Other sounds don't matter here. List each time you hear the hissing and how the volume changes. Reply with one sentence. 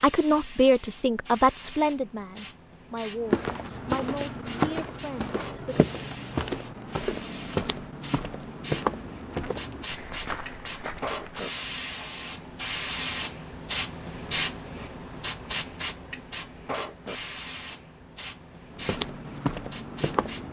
The hissing can be heard from 0.0 to 20.4 s, getting louder then quieter.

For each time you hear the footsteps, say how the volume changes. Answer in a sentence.
The footsteps can be heard from 3.2 to 11.4 s, getting quieter; and briefly from 18.7 to 20.4 s.